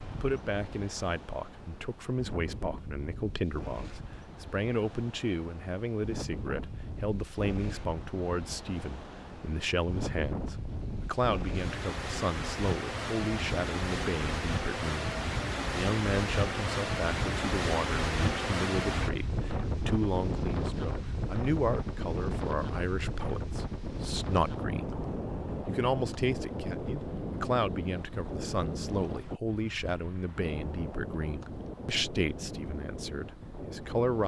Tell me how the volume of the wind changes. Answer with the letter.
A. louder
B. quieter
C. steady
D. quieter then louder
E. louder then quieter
E.